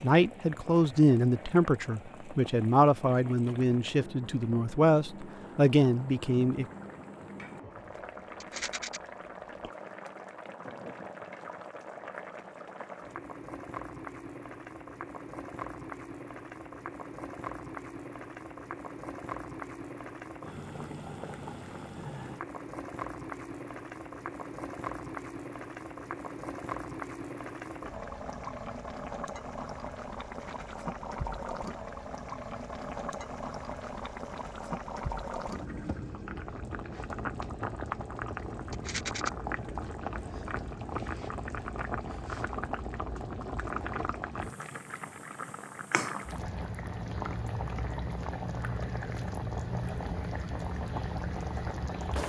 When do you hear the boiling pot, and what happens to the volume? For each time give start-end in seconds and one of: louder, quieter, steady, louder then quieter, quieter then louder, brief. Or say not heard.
0.0-52.2 louder.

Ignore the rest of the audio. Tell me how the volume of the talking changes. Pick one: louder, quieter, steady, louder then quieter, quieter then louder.
steady.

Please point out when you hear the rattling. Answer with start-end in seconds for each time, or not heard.
8.4-9.0, 30.2-30.9, 38.7-39.3.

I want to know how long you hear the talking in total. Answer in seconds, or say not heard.
7 s.